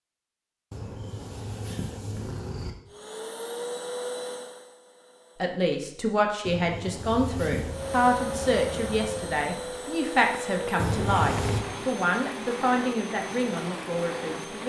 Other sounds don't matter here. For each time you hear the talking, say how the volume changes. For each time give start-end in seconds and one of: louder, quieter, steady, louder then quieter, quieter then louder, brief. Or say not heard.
5.4-14.6 steady.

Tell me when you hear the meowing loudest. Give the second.
11 s.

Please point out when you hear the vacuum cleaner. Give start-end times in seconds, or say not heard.
2.9-5.6, 7.6-14.6.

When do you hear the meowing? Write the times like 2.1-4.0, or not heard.
0.7-2.7, 6.5-7.8, 10.8-11.7.